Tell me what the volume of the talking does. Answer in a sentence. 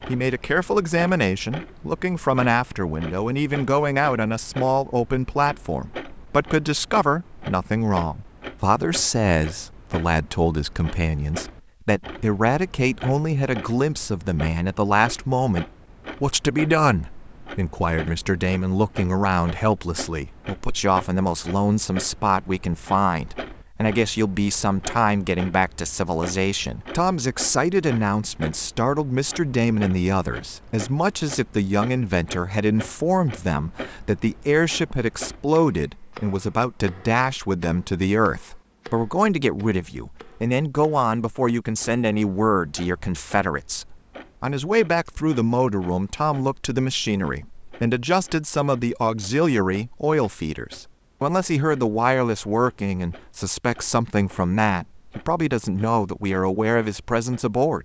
The loudness of the talking stays about the same.